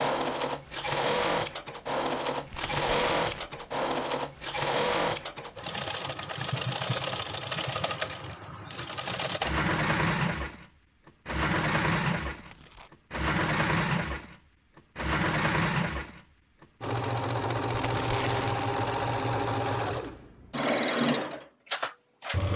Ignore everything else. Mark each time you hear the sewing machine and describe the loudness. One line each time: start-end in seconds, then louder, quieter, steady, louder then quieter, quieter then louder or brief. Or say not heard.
0.0-22.5 steady.